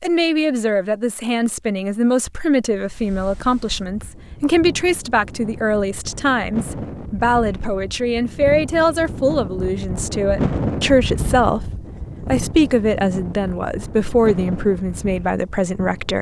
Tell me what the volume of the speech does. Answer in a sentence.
The loudness of the speech stays about the same.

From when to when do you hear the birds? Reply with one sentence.
You can't hear the birds here.